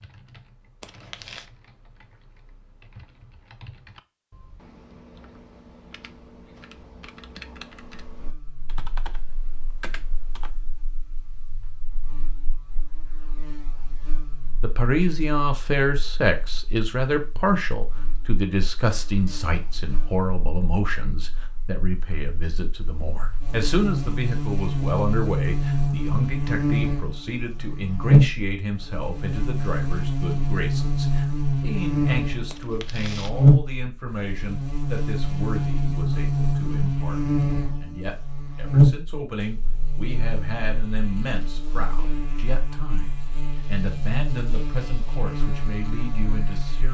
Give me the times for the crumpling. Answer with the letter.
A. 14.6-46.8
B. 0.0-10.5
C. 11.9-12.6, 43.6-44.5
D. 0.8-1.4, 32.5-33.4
D.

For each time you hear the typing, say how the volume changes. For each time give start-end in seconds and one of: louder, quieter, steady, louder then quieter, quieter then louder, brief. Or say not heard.
0.0-10.5 louder.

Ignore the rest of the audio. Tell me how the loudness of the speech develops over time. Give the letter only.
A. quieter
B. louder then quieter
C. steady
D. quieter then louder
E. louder
A.